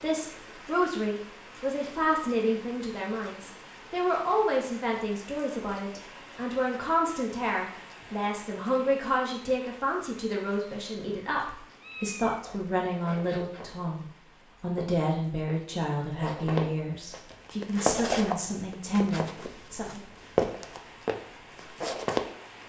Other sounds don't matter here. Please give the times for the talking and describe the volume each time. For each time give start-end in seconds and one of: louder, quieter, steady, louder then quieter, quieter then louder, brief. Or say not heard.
0.0-20.1 steady.